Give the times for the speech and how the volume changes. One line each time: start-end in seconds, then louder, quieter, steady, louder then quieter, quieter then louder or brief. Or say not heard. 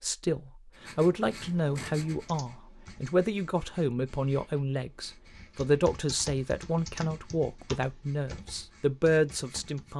0.0-9.9 steady.